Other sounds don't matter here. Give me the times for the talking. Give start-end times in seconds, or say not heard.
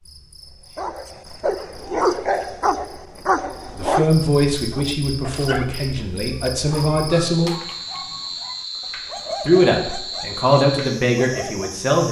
3.8-7.5, 9.4-12.0.